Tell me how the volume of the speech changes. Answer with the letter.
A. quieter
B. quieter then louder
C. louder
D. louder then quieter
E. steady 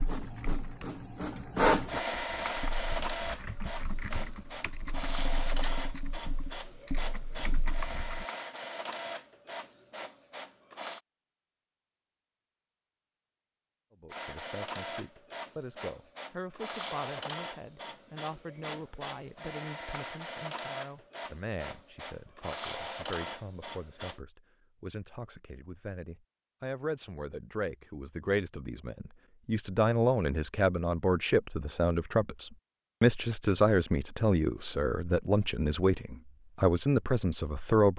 C.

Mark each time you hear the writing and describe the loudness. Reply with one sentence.
The writing can't be heard in this clip.